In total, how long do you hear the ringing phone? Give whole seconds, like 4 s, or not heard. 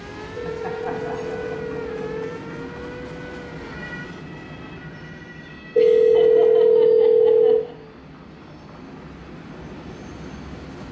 4 s.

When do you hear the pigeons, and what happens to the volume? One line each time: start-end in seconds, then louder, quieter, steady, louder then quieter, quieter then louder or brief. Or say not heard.
not heard.